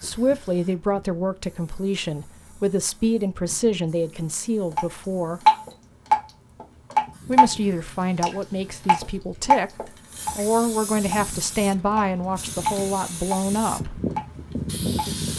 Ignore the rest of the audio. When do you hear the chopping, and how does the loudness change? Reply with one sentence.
You can't hear the chopping here.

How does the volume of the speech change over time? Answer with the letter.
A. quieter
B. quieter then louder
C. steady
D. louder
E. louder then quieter
C.